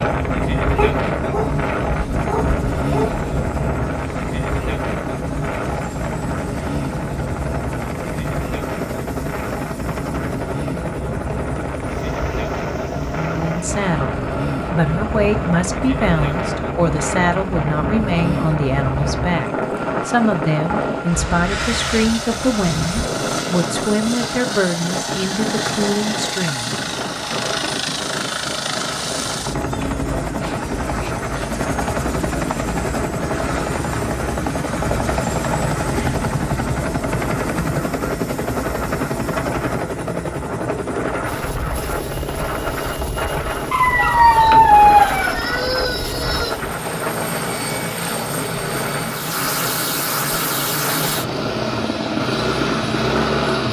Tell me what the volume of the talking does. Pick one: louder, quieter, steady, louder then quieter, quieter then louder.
steady.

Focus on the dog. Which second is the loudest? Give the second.
45 s.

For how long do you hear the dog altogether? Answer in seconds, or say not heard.
5 s.